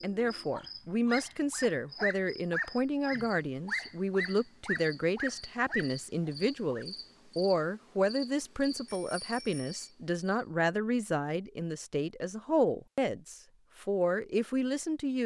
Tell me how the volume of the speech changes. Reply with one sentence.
The loudness of the speech stays about the same.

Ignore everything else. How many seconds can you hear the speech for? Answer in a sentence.
The speech can be heard for 15 seconds in total.